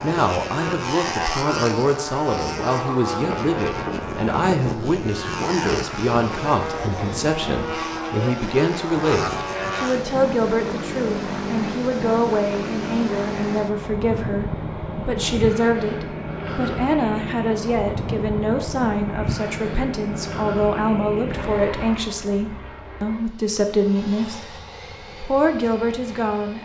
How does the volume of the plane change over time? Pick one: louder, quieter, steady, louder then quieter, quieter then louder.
quieter.